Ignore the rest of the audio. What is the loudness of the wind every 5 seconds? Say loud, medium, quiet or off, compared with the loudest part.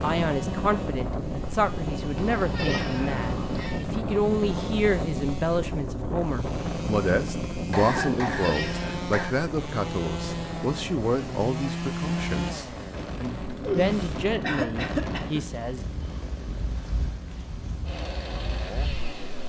loud, loud, medium, medium.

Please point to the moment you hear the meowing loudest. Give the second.
14 s.